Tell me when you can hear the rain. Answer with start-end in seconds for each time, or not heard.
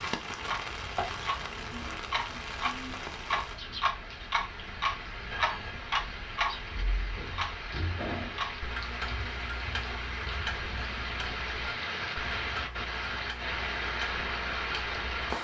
0.0-15.3.